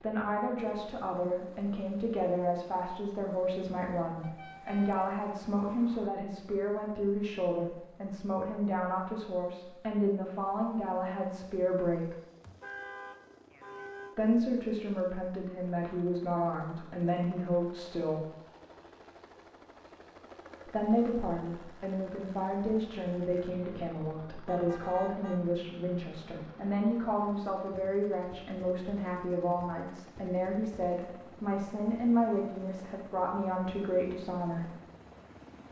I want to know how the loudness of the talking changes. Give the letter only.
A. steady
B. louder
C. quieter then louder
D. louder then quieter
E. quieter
A.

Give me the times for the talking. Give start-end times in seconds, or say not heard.
0.0-12.2, 14.2-18.2, 20.6-34.7.